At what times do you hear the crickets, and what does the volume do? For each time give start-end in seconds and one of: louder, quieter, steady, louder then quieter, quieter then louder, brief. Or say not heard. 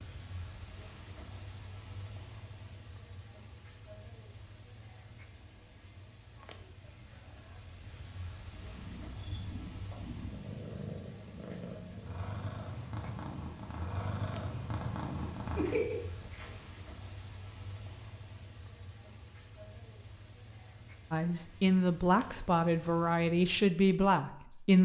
0.0-24.8 steady.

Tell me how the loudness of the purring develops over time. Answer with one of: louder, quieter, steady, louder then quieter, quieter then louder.
louder.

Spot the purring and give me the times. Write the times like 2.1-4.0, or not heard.
8.5-16.6.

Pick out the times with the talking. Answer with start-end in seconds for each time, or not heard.
21.1-24.8.